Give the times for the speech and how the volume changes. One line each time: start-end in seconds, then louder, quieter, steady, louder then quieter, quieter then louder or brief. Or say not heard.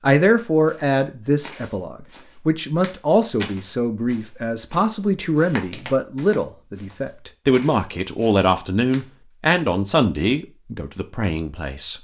0.0-11.9 steady.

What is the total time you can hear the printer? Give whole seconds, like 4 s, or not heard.
not heard.